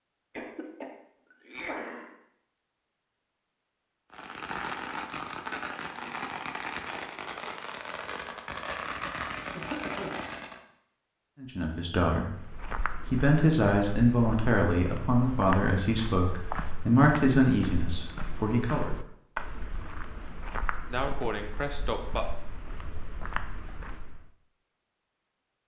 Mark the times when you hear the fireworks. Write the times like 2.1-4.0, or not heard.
4.1-10.6.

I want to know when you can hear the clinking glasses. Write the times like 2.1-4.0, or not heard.
not heard.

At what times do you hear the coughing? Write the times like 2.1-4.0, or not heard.
0.3-2.1, 9.6-10.6, 20.9-22.3.